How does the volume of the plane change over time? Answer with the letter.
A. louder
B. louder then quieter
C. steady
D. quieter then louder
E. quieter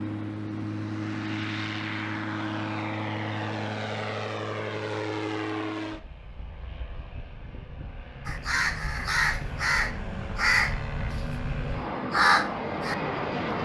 D.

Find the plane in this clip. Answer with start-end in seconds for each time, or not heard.
0.0-13.6.